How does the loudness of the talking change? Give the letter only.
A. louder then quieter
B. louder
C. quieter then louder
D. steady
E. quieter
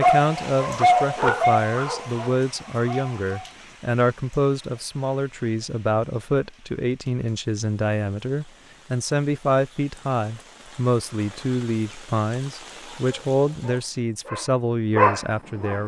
D.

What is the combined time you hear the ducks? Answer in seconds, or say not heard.
not heard.